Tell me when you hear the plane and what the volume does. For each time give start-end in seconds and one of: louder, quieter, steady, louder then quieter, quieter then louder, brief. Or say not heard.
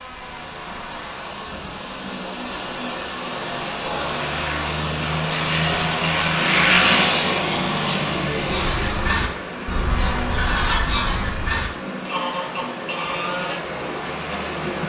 0.0-14.8 louder then quieter.